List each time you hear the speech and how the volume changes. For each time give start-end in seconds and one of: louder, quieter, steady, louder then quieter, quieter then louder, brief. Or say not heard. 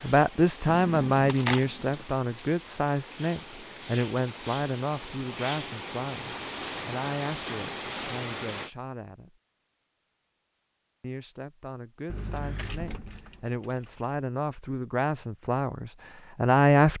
0.0-9.3 quieter
11.0-16.9 louder.